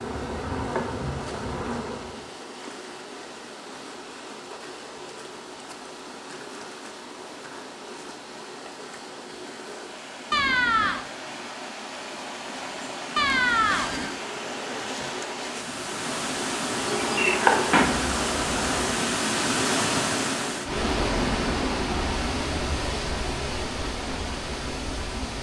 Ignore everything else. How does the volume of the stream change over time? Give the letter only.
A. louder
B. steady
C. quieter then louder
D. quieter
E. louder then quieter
A.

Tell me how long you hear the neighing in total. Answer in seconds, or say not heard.
2 s.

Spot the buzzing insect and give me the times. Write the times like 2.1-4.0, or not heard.
0.0-2.4, 16.7-18.9.